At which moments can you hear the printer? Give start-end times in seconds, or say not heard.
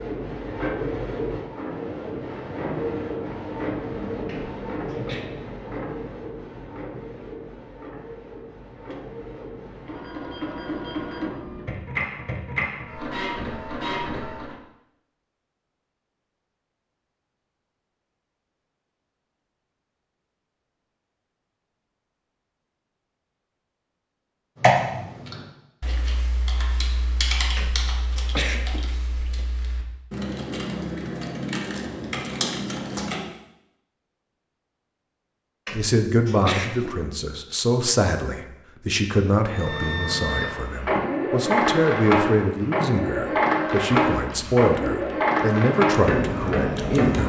0.0-14.6, 39.5-47.2.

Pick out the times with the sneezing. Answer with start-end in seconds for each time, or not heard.
4.2-5.2, 27.6-29.4, 35.6-37.0.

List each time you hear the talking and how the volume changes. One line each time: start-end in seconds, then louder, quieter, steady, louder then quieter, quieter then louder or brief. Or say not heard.
35.7-47.2 steady.